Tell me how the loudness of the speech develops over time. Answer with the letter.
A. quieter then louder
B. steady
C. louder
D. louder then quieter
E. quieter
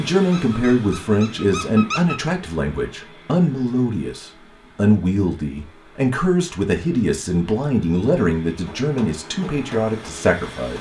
B.